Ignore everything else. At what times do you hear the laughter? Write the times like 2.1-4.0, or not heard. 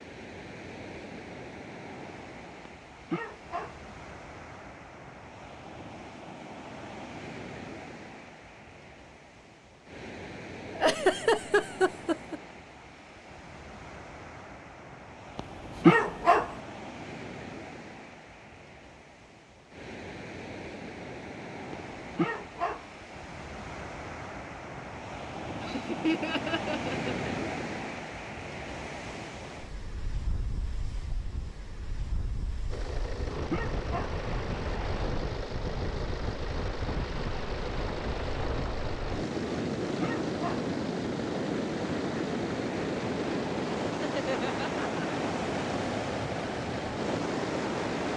10.7-12.4, 25.6-27.1, 44.0-45.0.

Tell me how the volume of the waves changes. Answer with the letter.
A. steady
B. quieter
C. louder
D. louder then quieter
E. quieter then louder
C.